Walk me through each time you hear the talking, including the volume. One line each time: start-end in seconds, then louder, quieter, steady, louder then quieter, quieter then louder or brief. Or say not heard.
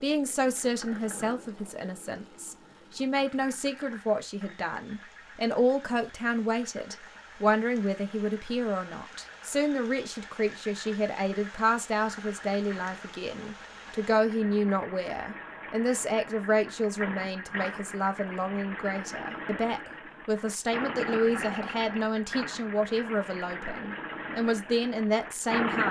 0.0-25.8 steady.